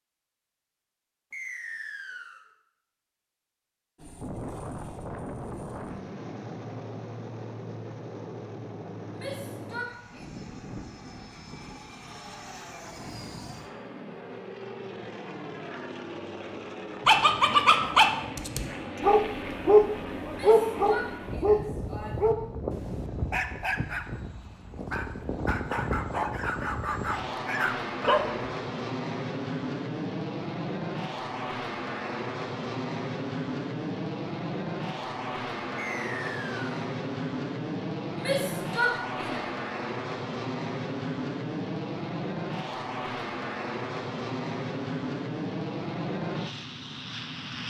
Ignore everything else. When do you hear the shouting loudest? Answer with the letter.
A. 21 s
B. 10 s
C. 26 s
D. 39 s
D.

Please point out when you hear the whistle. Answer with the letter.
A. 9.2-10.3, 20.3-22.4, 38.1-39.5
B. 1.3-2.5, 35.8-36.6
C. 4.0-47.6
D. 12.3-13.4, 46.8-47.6
B.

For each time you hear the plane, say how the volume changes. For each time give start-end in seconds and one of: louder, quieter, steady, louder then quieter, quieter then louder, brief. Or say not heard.
4.0-47.6 louder.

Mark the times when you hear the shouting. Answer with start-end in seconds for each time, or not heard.
9.2-10.3, 20.3-22.4, 38.1-39.5.